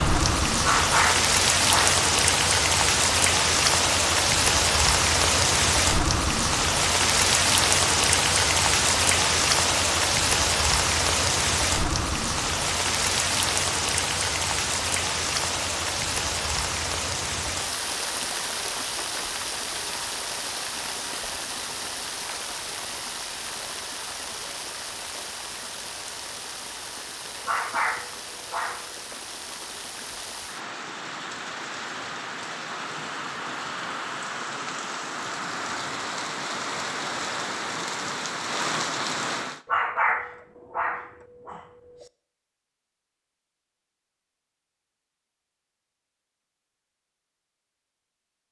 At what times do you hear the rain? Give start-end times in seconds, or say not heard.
0.0-39.6.